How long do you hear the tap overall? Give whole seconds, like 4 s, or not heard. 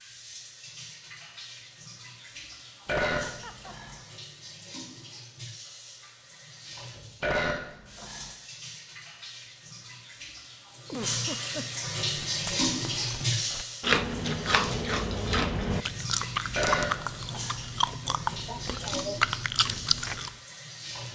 21 s.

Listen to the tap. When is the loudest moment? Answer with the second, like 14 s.
13 s.